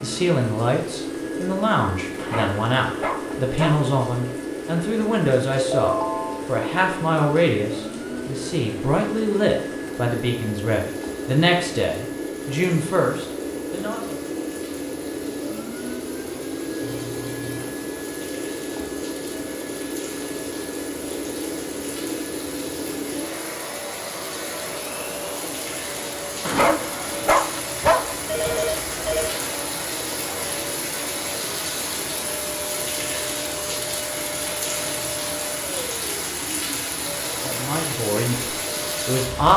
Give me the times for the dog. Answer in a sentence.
You can hear the dog from 2.1 to 3.9 s and from 26.4 to 28.8 s.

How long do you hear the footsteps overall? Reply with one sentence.
You can't hear the footsteps here.